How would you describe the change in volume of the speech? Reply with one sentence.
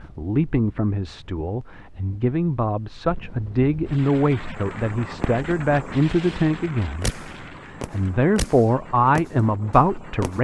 The volume of the speech goes up.